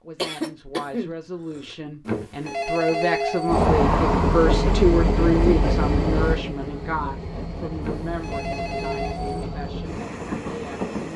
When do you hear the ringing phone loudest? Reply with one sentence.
The loudest moment of the ringing phone is at 3 seconds.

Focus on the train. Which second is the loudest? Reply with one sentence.
The loudest moment of the train is at 4 seconds.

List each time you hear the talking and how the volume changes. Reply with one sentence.
You can hear the talking from 0.0 to 11.1 s, getting louder then quieter.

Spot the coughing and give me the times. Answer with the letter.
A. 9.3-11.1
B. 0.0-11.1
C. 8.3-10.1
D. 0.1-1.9
D.